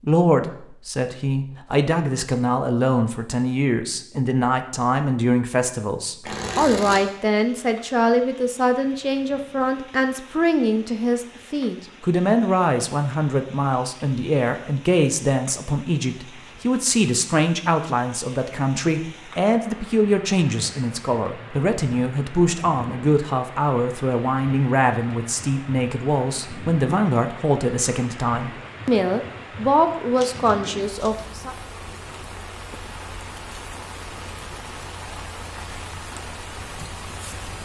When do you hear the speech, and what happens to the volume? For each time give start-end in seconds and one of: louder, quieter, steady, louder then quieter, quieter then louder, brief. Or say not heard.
0.0-31.6 steady.